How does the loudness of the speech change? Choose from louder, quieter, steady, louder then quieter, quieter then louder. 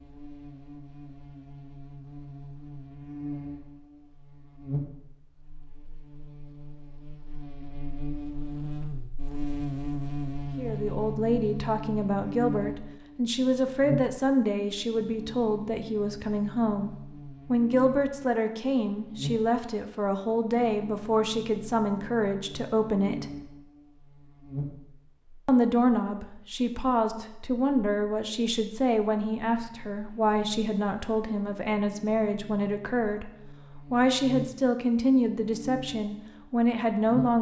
steady.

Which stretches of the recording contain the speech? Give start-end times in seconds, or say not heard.
10.6-16.9, 17.5-23.3, 25.4-37.3.